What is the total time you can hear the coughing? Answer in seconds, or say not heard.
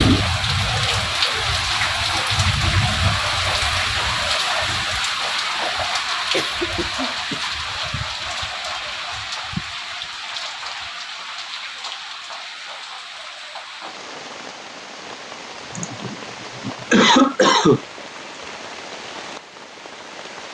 3 s.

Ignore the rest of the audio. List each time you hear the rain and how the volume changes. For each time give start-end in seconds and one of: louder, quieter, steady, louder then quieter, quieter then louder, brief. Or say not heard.
0.0-20.4 quieter.